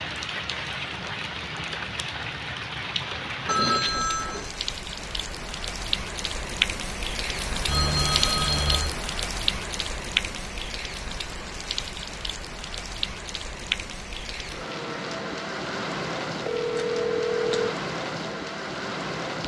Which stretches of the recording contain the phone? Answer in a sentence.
You can hear the phone from 3.5 to 4.5 s, from 7.7 to 8.9 s and from 16.4 to 17.8 s.